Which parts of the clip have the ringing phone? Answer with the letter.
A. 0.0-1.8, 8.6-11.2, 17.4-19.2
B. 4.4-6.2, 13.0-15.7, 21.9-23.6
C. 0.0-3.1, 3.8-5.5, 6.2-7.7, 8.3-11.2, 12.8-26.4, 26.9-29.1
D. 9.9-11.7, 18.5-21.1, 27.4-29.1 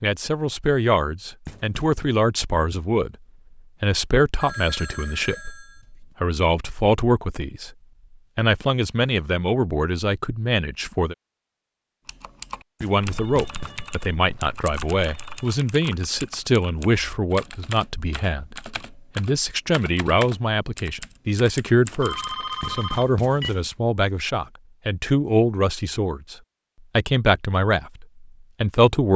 B.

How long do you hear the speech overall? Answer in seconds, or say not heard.
25 s.